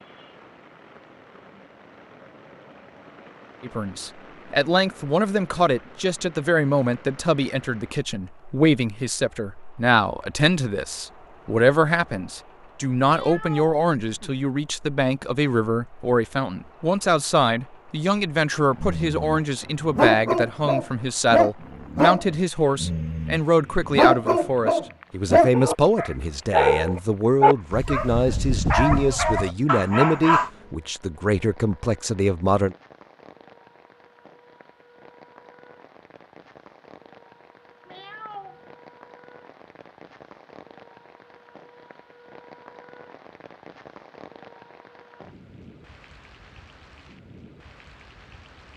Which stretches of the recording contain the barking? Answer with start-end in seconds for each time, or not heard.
18.8-30.5.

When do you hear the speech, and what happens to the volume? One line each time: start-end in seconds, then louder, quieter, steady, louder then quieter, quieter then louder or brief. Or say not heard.
3.6-32.8 steady.